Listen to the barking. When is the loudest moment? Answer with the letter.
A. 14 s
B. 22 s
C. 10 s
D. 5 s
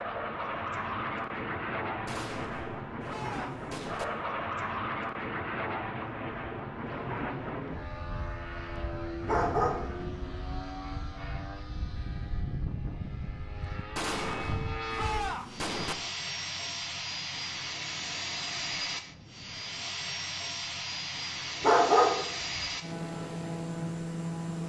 B.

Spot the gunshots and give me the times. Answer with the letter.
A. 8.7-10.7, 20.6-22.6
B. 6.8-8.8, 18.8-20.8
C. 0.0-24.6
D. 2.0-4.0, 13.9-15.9
D.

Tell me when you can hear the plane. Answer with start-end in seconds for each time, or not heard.
0.0-24.6.